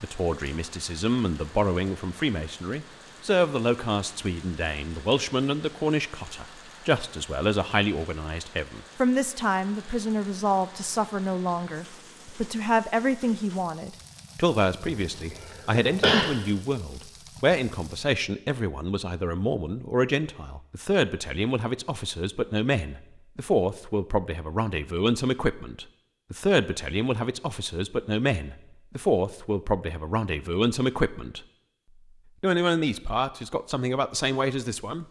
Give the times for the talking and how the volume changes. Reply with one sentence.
You can hear the talking from 0.0 to 31.4 s, at a steady volume; and briefly from 32.4 to 35.0 s.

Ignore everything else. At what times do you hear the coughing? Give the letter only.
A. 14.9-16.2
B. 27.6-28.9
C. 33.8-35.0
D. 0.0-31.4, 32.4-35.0
A.